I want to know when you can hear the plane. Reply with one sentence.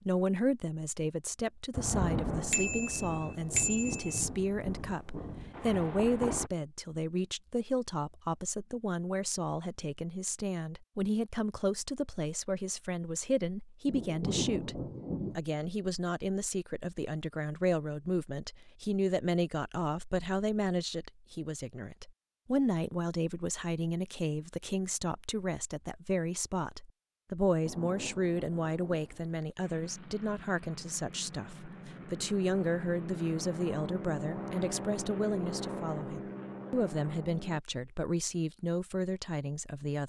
You can hear the plane from 29.6 to 37.6 s.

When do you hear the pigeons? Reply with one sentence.
You can't hear the pigeons here.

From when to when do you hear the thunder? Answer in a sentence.
The thunder can be heard from 1.7 to 6.5 s, from 13.8 to 15.4 s and from 27.6 to 29.6 s.